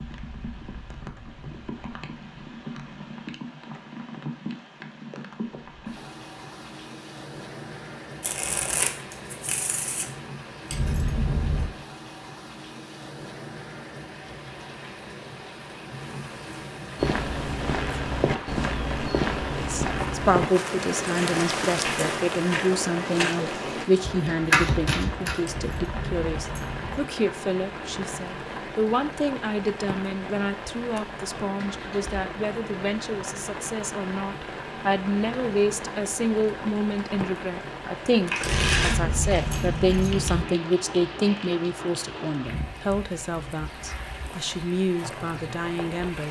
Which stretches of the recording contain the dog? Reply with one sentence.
You can't hear the dog here.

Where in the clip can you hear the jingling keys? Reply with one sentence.
You can hear the jingling keys from 10.7 to 11.7 s, from 25.4 to 27.0 s and from 38.4 to 40.5 s.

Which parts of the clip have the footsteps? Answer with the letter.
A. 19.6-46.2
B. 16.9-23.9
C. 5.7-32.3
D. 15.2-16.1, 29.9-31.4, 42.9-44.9
B.